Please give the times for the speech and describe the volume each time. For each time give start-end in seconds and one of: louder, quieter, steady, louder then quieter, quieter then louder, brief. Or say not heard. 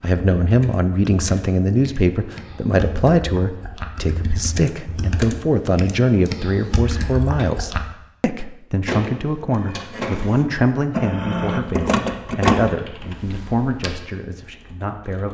0.0-15.2 quieter.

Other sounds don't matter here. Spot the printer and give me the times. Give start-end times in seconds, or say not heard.
8.8-12.8.